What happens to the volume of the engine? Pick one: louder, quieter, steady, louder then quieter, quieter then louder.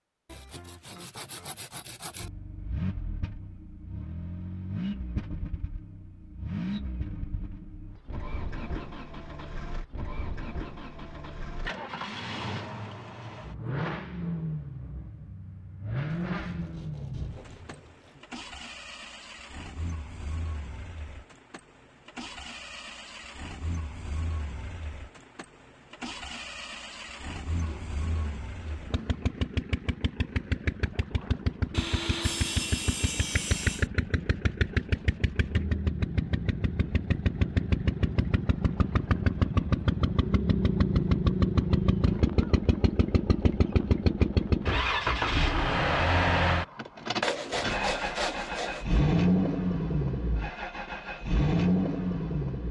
louder.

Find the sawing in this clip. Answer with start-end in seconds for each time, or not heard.
0.2-2.3, 16.1-18.3, 27.5-29.3, 31.7-33.9, 47.2-49.0.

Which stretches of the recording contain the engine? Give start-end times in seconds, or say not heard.
2.2-52.6.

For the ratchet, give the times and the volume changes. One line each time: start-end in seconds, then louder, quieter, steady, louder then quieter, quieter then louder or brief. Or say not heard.
not heard.